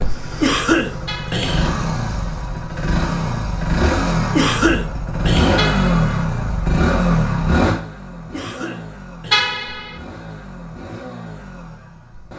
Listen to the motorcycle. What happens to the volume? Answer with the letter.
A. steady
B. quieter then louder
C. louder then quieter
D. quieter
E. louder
C.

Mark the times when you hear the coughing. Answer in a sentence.
The coughing can be heard from 0.4 to 1.8 s, from 4.3 to 5.7 s and from 8.3 to 9.6 s.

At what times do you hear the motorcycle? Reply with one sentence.
You can hear the motorcycle from 0.0 to 12.3 s.